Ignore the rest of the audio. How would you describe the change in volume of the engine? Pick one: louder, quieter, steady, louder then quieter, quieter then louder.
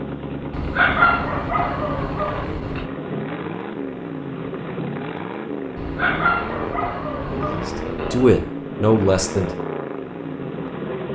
steady.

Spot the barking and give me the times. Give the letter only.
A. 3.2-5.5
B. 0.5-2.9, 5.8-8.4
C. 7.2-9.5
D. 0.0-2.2
B.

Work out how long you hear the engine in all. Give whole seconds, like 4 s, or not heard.
11 s.